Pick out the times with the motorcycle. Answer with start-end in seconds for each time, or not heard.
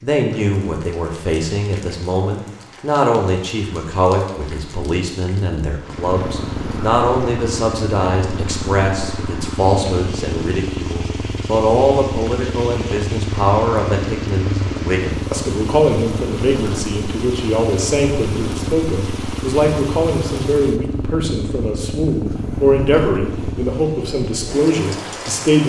5.8-23.9.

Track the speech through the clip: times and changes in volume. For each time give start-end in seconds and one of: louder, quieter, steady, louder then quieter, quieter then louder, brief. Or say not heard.
0.0-25.6 steady.